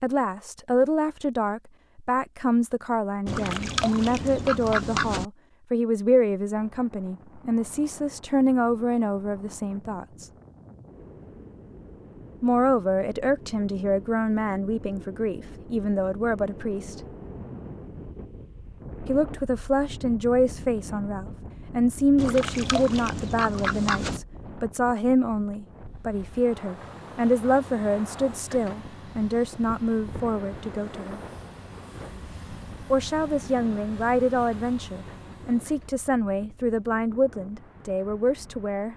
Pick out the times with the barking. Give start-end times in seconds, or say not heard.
not heard.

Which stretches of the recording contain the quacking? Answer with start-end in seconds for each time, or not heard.
3.2-5.2, 22.1-24.2.